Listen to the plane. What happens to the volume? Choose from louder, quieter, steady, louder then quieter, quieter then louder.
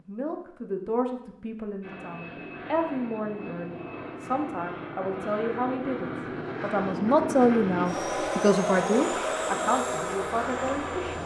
louder.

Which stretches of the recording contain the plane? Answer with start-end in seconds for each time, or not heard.
1.8-11.2.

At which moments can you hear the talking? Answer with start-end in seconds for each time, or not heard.
0.1-11.2.